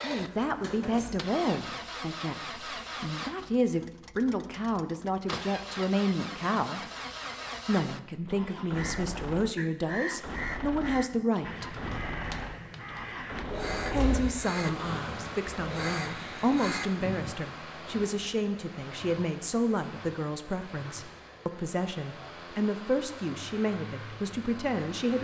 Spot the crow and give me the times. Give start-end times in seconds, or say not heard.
8.7-17.4.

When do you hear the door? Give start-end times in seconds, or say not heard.
0.1-1.2, 13.5-16.0.